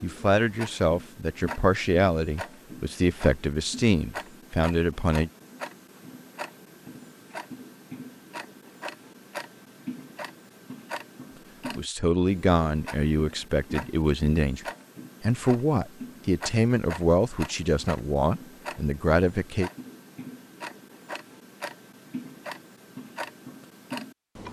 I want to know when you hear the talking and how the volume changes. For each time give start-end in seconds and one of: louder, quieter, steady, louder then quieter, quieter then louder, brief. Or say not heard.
0.0-5.3 steady
11.8-19.7 steady.